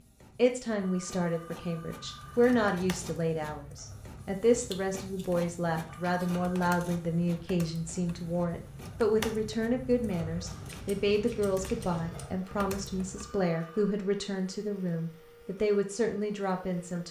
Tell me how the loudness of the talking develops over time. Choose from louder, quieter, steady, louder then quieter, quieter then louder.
steady.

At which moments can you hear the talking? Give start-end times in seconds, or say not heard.
0.3-17.0.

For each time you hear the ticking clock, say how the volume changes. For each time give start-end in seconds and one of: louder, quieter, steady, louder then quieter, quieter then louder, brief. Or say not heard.
not heard.